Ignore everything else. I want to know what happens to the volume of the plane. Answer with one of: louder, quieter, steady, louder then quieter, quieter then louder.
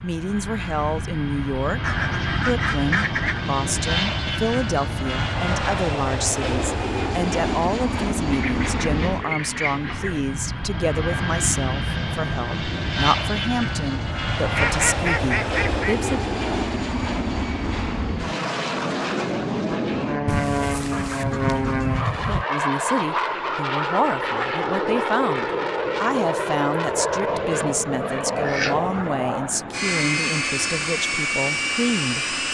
steady.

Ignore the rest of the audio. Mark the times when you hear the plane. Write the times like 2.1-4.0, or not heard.
0.0-32.4.